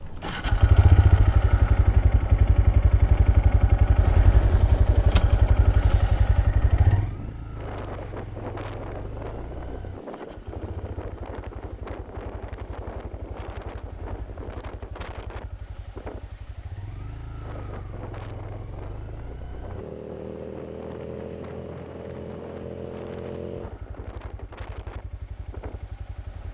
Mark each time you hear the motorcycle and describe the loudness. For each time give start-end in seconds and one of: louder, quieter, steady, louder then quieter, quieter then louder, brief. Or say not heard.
0.0-26.4 quieter then louder.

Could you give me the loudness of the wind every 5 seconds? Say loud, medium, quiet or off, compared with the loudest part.
loud, loud, loud, medium, medium, quiet.